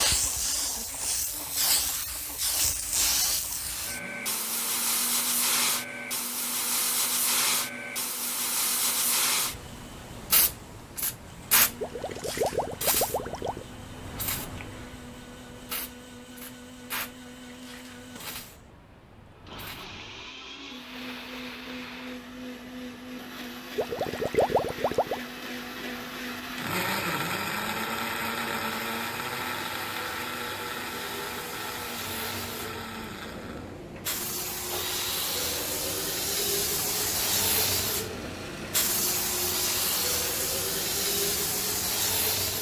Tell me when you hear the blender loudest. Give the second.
27 s.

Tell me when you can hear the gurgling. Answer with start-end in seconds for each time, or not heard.
11.8-13.7, 23.8-25.2.